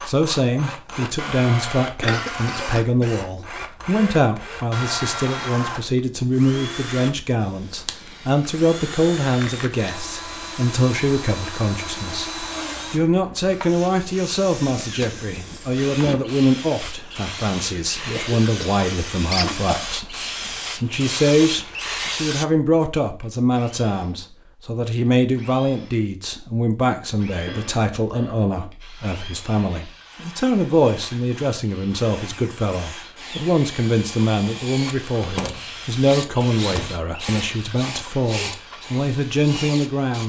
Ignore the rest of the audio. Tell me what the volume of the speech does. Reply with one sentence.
The loudness of the speech stays about the same.